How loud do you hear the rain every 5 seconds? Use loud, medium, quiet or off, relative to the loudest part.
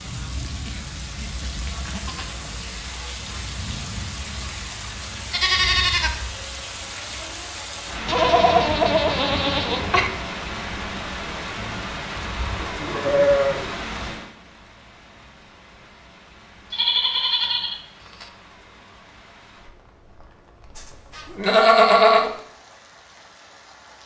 loud, loud, loud, quiet, quiet.